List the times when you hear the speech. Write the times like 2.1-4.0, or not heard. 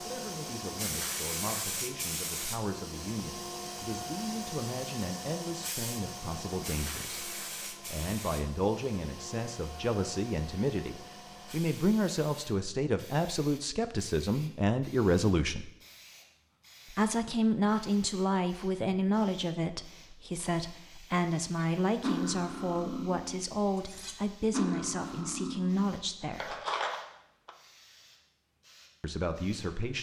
0.0-15.7, 16.9-26.6, 29.0-29.9.